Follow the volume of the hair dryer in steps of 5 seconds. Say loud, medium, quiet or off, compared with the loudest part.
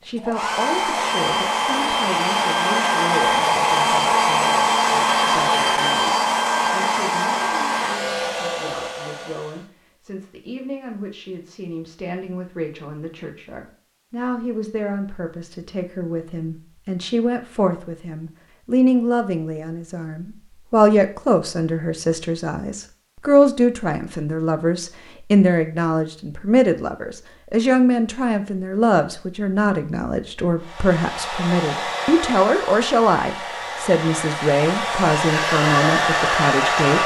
loud, loud, off, off, off, off, medium, loud.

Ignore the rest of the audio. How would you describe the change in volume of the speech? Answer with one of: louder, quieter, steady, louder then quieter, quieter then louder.
louder.